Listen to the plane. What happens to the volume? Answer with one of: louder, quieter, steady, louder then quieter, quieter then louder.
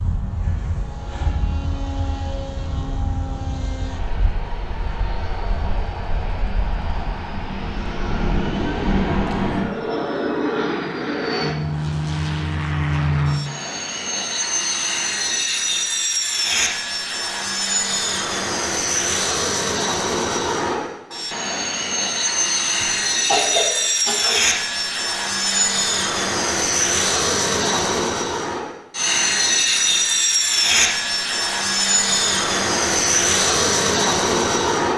louder.